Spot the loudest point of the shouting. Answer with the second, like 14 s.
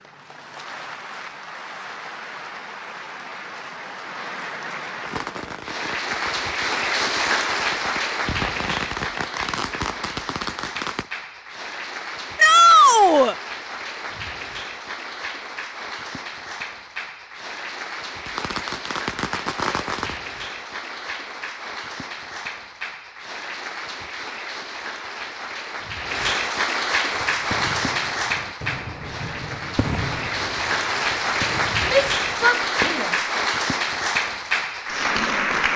13 s.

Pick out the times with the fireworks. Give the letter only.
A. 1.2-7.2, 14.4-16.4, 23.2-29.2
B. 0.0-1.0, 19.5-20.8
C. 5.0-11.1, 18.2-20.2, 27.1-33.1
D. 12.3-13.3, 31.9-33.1
C.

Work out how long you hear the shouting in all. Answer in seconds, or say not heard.
2 s.